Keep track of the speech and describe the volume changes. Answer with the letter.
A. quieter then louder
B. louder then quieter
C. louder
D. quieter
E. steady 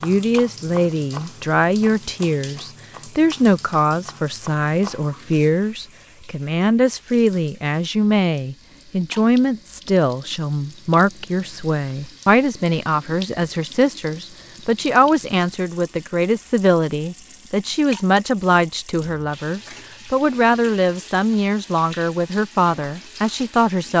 E.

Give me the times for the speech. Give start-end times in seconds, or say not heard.
0.0-23.9.